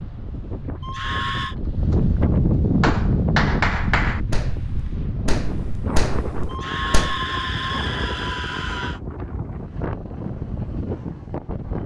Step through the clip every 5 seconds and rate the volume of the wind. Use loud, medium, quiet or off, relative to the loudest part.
loud, medium, medium.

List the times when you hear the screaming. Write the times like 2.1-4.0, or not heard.
0.8-1.6, 6.5-9.0.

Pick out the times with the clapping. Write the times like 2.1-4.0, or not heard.
2.8-7.2.